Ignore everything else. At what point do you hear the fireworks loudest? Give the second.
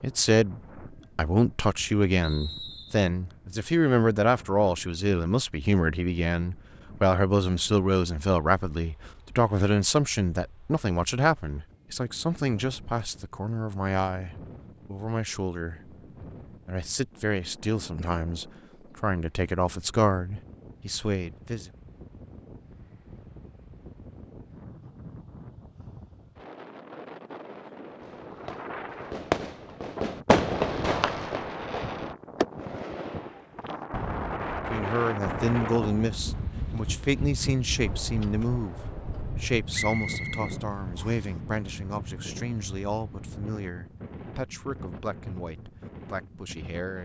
30 s.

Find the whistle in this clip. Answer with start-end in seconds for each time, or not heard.
2.2-3.0, 39.7-41.3.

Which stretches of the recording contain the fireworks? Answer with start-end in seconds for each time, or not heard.
28.0-36.5.